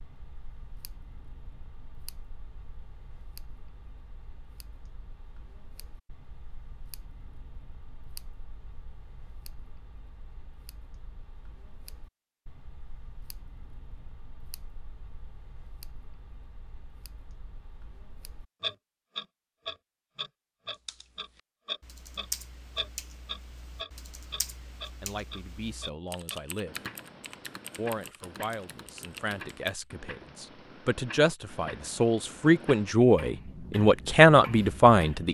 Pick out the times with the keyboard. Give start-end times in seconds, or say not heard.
20.7-29.9.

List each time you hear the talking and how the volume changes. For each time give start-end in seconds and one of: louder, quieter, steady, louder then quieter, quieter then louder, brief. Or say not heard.
25.0-26.8 brief
27.8-35.2 louder.